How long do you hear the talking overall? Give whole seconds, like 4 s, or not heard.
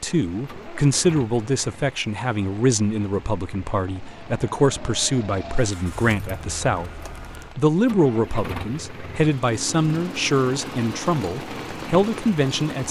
13 s.